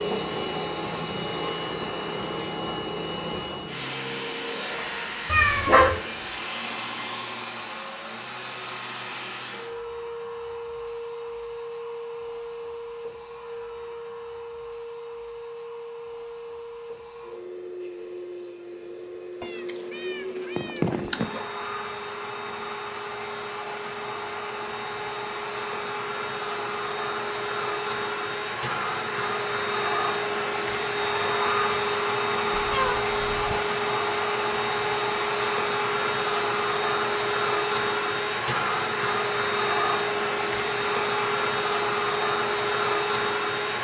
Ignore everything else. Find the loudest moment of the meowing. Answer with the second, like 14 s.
6 s.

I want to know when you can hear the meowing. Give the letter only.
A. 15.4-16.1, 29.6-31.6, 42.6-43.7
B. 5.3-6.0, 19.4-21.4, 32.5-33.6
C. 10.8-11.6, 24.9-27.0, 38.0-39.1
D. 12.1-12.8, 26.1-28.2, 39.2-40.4
B.